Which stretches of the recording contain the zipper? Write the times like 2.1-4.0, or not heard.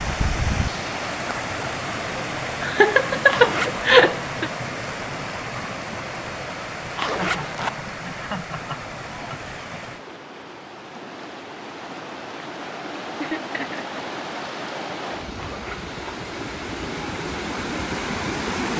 3.2-3.9, 7.0-7.8, 15.3-16.1.